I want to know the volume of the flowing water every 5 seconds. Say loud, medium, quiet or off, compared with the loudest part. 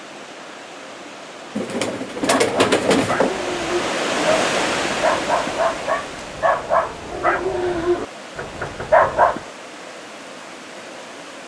loud, medium, medium.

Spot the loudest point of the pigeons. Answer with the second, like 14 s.
3 s.